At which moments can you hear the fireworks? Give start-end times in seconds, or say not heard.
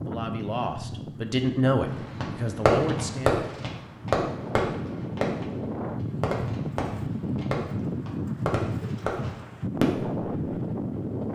1.9-10.6.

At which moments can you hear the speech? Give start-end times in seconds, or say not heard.
0.0-3.4.